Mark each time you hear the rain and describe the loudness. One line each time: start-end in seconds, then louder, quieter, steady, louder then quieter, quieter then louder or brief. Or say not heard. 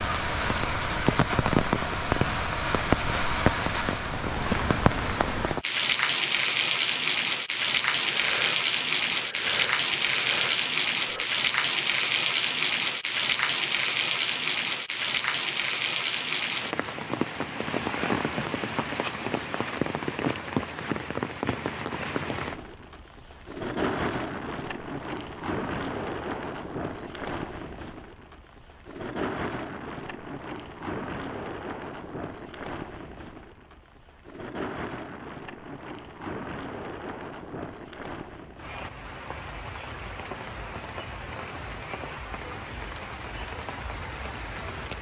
0.0-44.9 quieter.